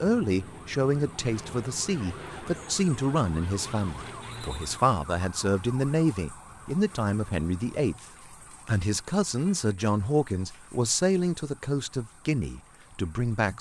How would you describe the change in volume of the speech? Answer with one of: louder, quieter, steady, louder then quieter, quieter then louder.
steady.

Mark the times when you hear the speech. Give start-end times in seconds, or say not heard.
0.0-8.1, 8.7-13.5.